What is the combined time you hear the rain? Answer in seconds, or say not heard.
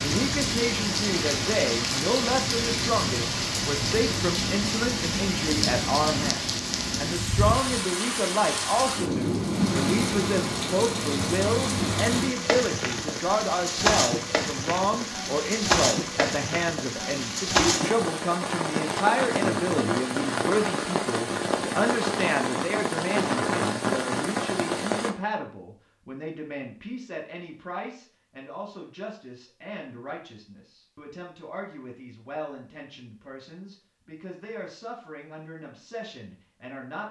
25 s.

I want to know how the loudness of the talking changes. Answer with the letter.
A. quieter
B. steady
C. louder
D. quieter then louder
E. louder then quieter
A.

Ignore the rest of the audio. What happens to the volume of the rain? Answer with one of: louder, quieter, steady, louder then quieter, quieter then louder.
steady.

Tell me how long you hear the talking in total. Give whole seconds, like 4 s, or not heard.
37 s.